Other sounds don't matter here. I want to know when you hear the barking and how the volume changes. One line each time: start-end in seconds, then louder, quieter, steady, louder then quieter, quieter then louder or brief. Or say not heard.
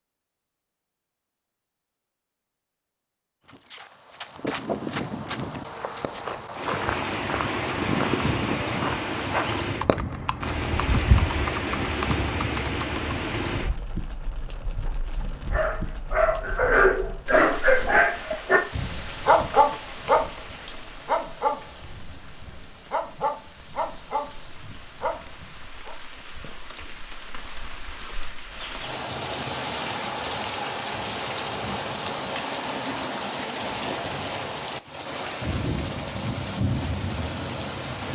15.5-25.9 quieter.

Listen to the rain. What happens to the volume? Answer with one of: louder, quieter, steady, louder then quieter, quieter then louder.
quieter then louder.